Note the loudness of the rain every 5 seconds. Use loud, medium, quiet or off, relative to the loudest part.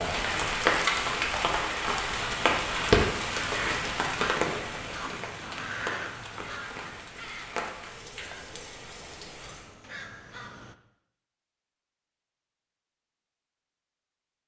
loud, quiet, off.